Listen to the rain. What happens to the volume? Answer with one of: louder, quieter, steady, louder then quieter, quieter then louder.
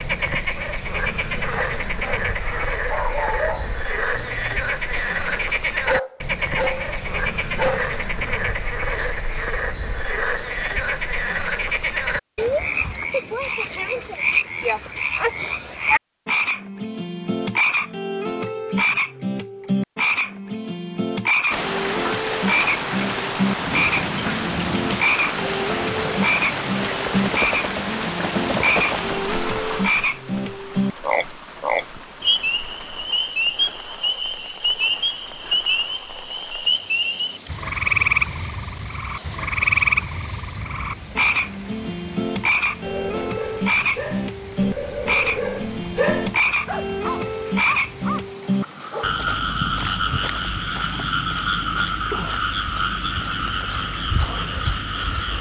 quieter.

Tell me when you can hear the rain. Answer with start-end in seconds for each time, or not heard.
21.5-55.3.